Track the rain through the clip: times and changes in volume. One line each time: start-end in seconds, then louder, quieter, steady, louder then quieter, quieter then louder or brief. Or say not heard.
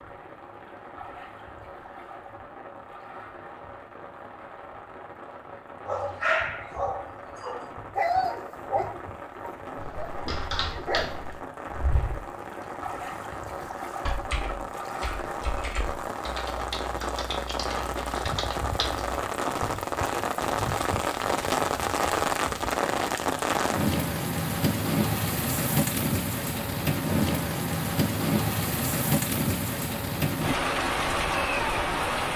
0.0-32.3 louder.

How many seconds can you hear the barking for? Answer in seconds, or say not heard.
5 s.